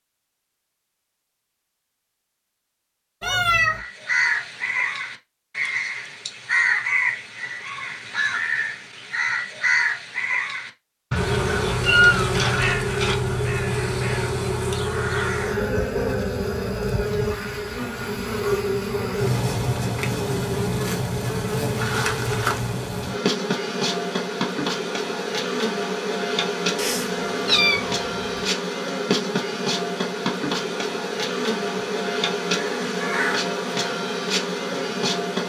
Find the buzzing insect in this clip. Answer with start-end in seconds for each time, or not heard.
11.2-35.4.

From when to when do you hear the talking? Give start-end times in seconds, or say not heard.
not heard.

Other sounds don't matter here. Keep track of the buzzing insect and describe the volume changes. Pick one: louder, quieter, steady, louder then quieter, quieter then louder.
steady.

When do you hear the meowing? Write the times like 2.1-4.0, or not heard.
3.2-3.8, 11.8-13.2, 26.8-28.2.